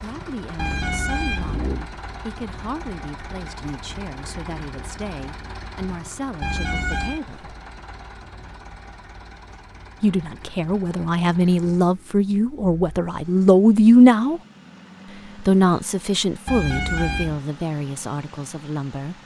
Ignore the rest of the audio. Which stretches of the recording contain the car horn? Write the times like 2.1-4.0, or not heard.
0.6-1.9, 6.4-7.2, 16.4-17.4.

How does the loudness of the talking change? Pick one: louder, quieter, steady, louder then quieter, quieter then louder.
louder then quieter.